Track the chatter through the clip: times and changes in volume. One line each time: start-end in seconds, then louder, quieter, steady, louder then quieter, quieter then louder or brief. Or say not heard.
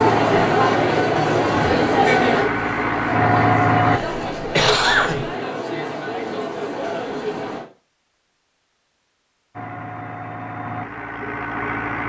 0.0-7.7 quieter.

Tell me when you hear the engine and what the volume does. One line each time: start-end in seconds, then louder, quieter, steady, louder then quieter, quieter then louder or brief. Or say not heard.
0.0-4.0 louder
9.6-12.0 brief.